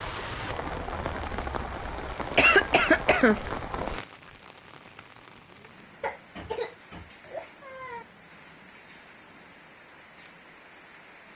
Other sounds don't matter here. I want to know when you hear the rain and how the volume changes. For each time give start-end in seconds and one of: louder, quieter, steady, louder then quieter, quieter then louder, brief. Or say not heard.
0.0-11.3 quieter.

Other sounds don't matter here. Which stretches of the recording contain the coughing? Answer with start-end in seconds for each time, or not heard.
2.4-3.4, 6.0-8.1.